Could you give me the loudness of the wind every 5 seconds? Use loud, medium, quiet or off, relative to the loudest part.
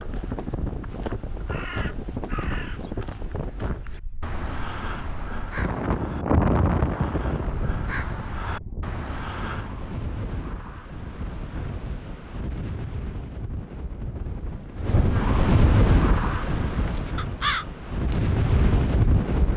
medium, loud, medium, loud.